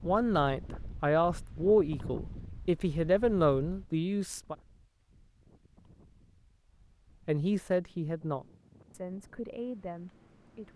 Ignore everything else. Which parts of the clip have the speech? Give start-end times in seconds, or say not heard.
0.0-4.5, 7.2-10.7.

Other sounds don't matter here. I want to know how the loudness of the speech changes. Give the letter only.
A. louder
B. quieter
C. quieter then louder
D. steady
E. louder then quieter
B.